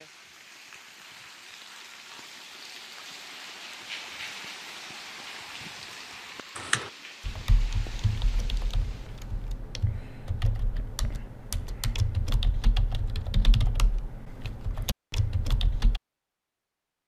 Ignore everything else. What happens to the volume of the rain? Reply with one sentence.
The loudness of the rain goes up, then down.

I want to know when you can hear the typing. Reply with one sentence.
You can hear the typing from 6.5 to 16.0 s.